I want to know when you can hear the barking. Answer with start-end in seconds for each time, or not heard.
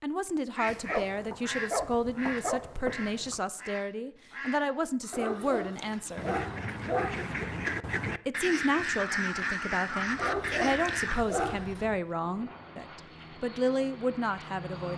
0.7-3.4, 5.1-7.3, 10.2-11.9.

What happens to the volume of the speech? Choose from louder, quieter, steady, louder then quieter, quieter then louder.
steady.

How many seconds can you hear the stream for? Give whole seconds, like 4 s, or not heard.
not heard.